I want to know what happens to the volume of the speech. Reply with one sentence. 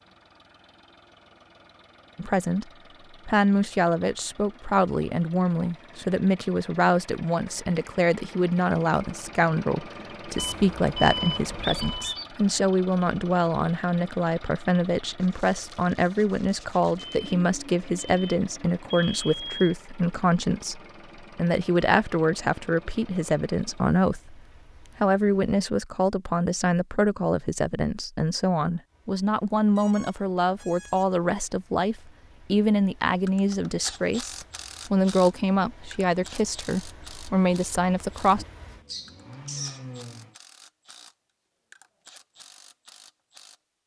The loudness of the speech stays about the same.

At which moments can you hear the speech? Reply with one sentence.
You can hear the speech from 2.1 to 24.4 s and from 25.0 to 38.5 s.